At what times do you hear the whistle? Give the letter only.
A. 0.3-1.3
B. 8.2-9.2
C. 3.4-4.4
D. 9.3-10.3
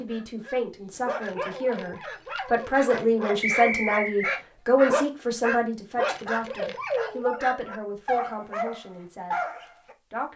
C.